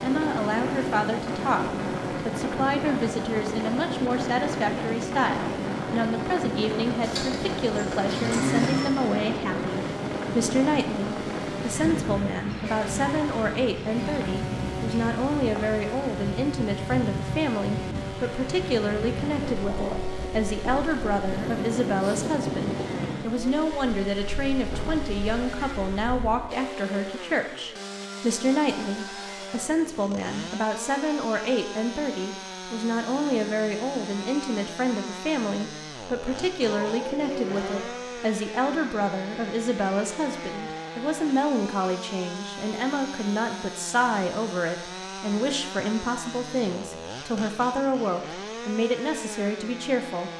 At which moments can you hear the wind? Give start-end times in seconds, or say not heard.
0.0-26.4.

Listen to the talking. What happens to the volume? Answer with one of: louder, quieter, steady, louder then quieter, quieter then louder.
steady.